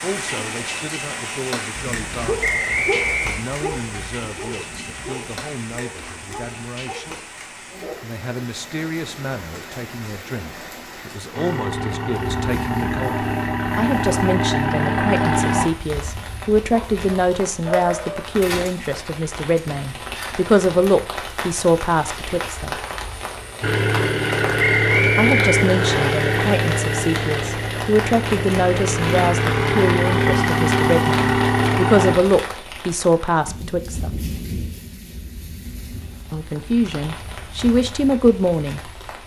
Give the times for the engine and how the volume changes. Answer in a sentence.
You can hear the engine from 11.3 to 15.7 s, getting louder; and from 23.6 to 32.1 s, getting quieter then louder.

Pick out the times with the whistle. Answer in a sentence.
You can hear the whistle from 2.4 to 3.5 s and from 24.6 to 26.1 s.